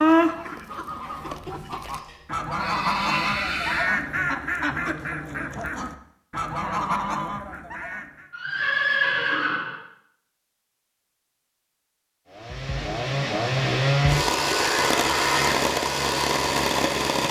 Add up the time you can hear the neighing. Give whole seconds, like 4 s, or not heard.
5 s.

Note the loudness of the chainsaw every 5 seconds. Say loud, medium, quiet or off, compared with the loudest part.
off, off, loud, loud.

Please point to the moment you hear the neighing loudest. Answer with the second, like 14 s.
9 s.